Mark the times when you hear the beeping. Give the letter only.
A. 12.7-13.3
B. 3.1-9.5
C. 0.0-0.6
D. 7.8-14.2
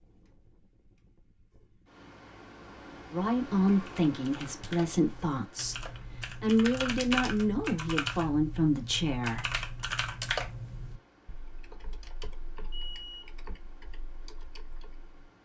A.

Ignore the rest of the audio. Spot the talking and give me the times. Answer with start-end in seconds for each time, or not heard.
3.1-9.5.